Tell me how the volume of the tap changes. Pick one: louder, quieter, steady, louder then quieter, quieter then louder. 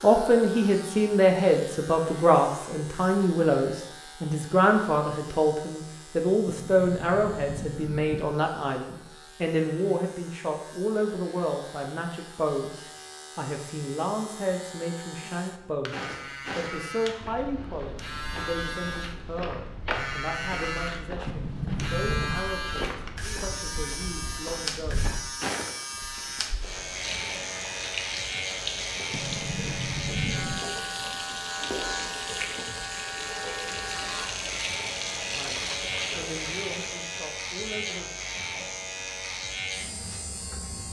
steady.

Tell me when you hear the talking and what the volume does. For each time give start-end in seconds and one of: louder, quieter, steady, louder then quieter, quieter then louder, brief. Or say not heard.
0.0-25.1 quieter
35.2-38.1 brief.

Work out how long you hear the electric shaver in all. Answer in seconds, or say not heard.
41 s.